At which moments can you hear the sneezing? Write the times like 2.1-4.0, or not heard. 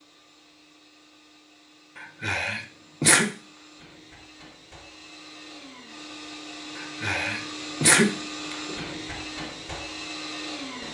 1.9-3.2, 6.8-8.8.